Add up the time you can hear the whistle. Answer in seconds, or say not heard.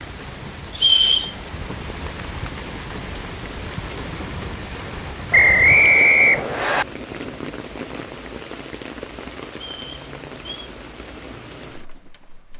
3 s.